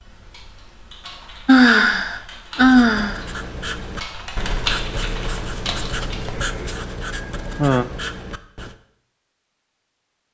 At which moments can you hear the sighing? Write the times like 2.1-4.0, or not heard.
1.4-3.2, 7.1-7.8.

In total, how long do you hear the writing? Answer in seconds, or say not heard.
6 s.